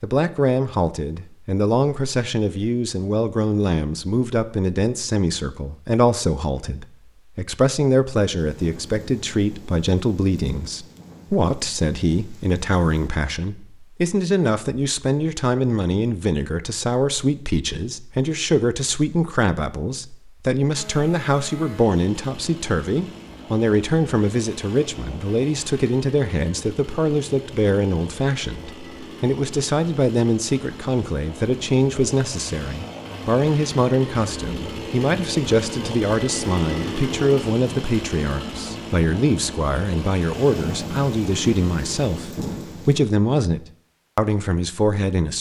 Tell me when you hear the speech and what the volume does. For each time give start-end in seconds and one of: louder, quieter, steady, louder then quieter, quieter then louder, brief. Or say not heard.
0.0-45.3 steady.